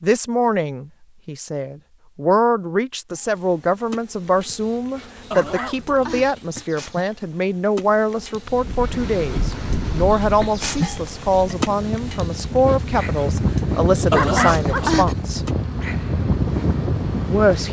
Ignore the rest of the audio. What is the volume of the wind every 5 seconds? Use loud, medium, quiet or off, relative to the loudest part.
off, medium, loud, loud.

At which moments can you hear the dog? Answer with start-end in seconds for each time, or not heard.
5.3-6.3, 14.1-15.2.